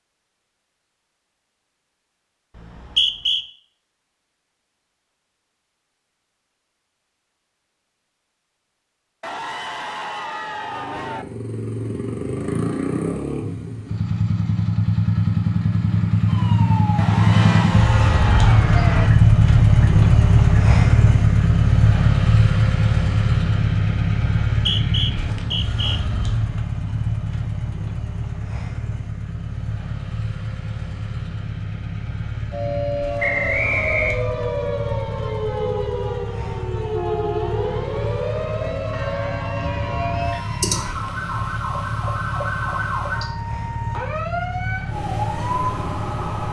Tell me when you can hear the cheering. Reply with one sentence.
You can hear the cheering from 9.2 to 11.2 s, from 16.9 to 18.6 s and from 38.9 to 41.0 s.